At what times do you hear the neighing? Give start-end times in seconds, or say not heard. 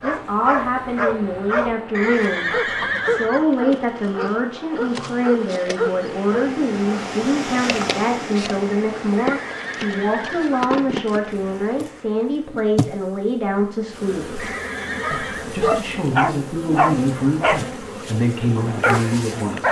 1.9-3.5, 9.2-10.7, 14.3-15.6.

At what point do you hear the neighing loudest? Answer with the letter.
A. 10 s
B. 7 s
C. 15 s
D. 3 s
D.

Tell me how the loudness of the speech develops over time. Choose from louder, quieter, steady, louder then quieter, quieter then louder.
steady.